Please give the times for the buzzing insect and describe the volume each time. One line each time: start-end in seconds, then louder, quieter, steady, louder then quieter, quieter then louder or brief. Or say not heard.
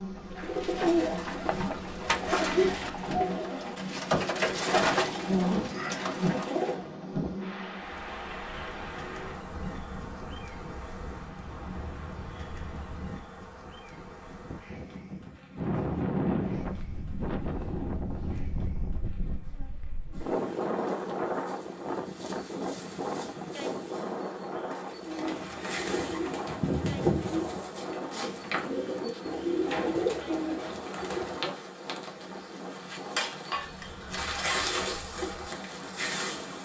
0.0-36.5 quieter then louder.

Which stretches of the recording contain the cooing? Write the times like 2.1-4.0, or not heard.
0.3-6.8, 24.9-31.6.